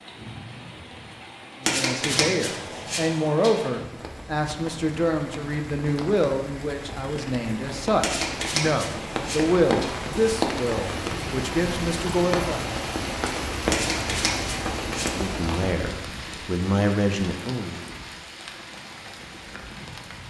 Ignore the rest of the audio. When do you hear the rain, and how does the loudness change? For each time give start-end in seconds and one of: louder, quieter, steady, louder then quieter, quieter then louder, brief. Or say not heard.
0.0-20.2 louder then quieter.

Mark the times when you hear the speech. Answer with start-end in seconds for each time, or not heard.
1.6-12.7, 15.1-17.8.